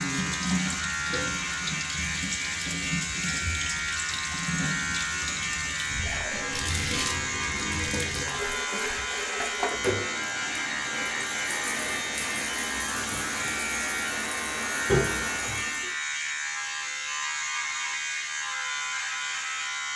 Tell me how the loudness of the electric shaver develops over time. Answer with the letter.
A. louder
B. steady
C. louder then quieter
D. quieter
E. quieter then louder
B.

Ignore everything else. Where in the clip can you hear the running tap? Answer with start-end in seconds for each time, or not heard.
0.0-15.9.